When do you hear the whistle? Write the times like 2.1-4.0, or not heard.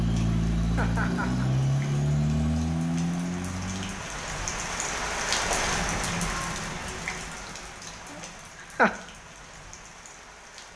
not heard.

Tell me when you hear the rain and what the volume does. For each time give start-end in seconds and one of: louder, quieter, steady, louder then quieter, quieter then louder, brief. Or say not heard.
0.0-10.7 louder then quieter.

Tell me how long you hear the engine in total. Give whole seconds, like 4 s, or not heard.
4 s.